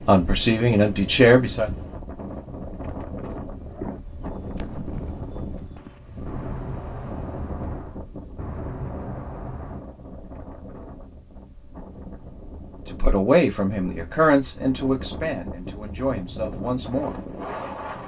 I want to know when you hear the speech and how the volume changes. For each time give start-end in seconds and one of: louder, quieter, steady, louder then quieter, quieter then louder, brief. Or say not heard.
0.1-1.7 brief
12.8-17.2 quieter.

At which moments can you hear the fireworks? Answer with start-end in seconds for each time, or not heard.
3.6-9.8.